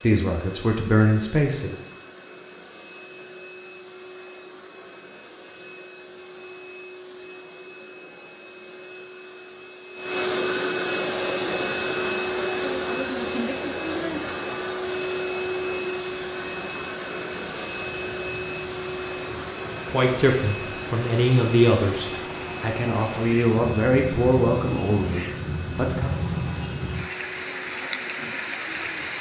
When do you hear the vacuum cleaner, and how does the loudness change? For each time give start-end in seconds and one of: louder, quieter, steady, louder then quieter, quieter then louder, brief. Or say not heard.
0.0-29.1 louder then quieter.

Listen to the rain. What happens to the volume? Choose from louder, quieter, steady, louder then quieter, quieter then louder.
louder.